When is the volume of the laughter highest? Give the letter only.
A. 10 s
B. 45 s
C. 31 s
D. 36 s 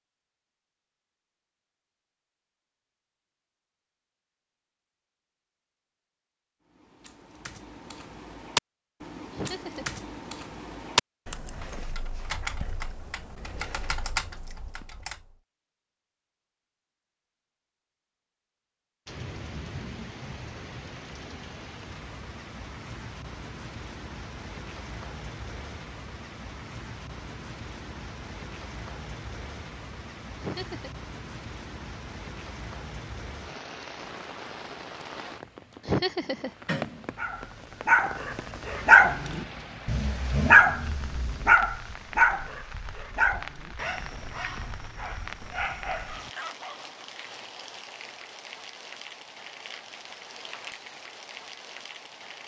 D.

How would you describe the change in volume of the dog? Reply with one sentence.
The loudness of the dog goes down.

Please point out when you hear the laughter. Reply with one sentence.
The laughter can be heard from 9.3 to 9.9 s, from 30.4 to 30.9 s and from 35.9 to 36.5 s.